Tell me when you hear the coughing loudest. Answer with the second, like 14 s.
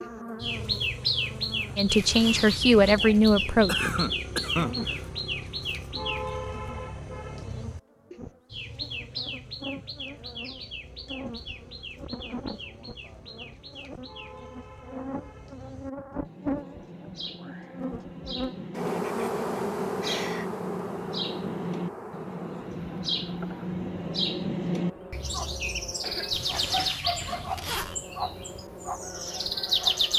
4 s.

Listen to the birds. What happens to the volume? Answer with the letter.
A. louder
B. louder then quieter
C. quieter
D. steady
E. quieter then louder
E.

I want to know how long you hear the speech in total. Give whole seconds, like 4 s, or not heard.
2 s.